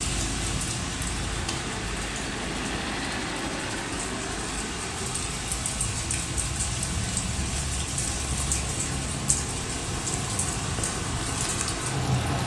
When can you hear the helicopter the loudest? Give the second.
3 s.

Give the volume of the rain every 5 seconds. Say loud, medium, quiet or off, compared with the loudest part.
medium, loud, loud.